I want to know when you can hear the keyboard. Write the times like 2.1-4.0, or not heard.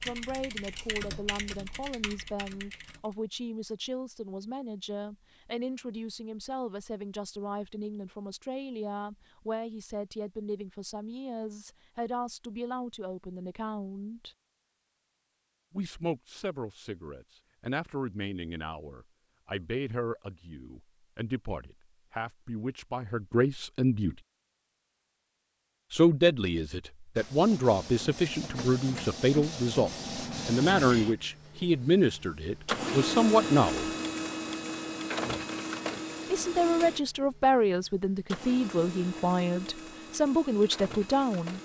0.0-3.1.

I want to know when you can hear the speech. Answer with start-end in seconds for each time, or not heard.
0.0-14.3, 15.7-24.1, 25.9-33.9, 36.3-41.6.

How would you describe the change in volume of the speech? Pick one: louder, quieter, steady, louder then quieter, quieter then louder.
louder.